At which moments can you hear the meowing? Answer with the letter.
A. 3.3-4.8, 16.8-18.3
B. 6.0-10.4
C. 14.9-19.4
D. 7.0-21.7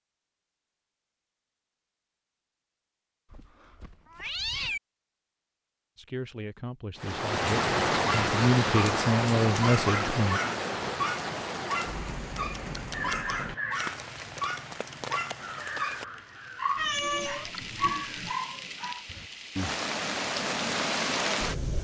A.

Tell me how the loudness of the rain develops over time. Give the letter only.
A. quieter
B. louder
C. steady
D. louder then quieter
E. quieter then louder
E.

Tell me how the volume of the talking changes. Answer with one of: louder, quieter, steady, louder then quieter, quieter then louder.
louder.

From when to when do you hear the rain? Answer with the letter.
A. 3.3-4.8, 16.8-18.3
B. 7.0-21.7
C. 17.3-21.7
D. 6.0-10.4
B.